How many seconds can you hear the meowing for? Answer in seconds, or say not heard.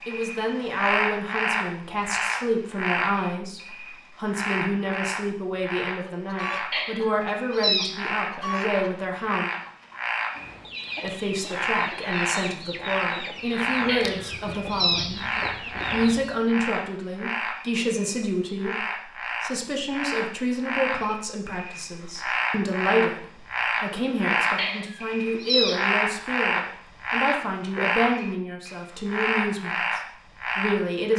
4 s.